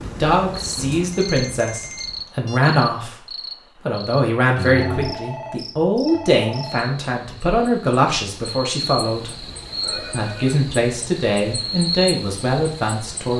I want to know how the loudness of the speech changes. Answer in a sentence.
The volume of the speech stays about the same.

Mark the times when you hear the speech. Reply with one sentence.
The speech can be heard from 0.0 to 9.3 s and from 10.1 to 13.3 s.